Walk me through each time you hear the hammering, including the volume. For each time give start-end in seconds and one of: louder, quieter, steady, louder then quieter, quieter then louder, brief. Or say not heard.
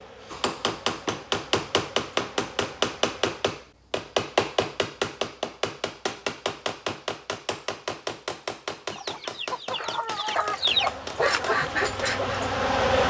0.3-12.2 quieter.